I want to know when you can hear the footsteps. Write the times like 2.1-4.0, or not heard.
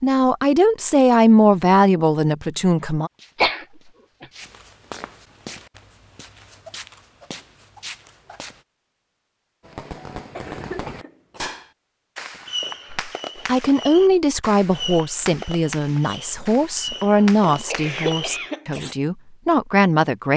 3.1-8.6.